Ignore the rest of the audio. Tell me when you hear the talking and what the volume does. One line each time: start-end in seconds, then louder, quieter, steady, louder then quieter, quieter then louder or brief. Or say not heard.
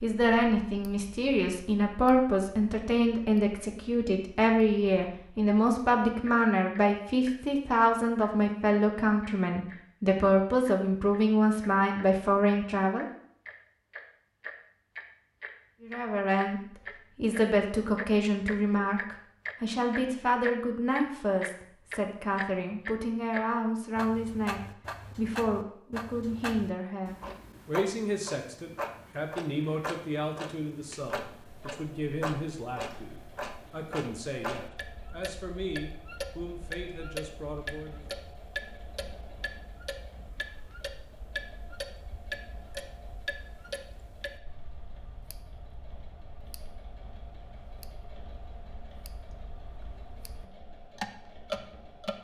0.0-13.1 steady
15.8-38.0 quieter.